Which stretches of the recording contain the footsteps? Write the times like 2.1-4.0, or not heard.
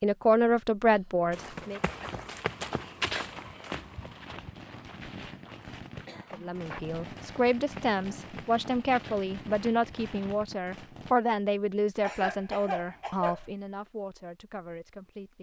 1.3-10.5.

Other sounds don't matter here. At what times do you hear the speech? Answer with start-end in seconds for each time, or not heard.
0.0-1.8, 6.3-15.3.